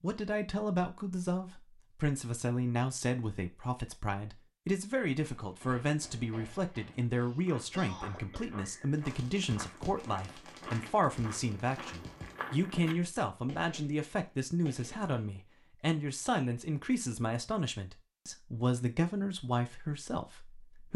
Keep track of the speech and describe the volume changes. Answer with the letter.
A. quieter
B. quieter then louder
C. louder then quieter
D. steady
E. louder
D.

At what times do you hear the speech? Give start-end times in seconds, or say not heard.
0.0-20.9.